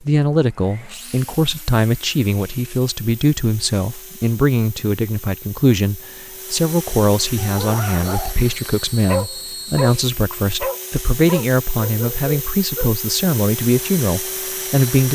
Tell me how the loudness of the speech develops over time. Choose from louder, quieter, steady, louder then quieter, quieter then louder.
steady.